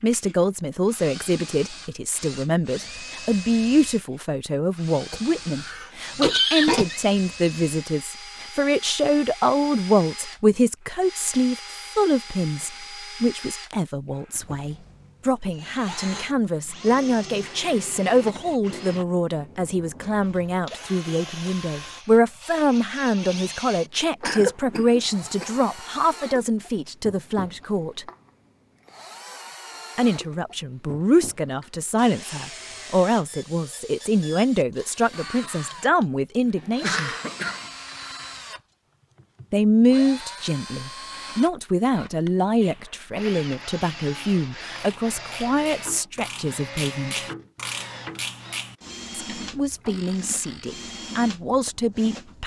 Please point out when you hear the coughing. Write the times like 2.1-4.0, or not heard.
5.1-7.0, 24.2-25.6, 36.5-37.6.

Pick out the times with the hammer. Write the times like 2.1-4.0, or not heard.
not heard.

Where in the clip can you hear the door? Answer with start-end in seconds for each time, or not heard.
not heard.